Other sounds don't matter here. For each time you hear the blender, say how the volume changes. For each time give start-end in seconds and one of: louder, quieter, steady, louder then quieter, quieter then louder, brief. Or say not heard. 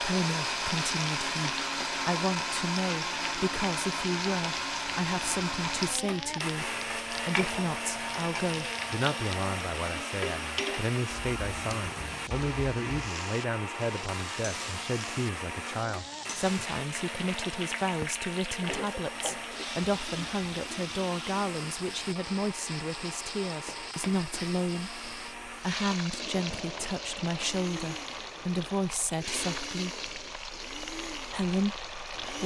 0.0-32.4 quieter.